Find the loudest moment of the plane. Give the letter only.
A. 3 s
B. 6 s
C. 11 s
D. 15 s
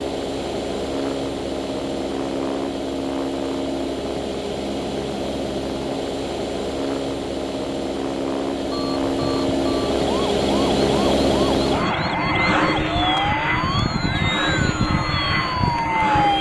C.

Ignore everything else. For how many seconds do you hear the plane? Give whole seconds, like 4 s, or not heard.
16 s.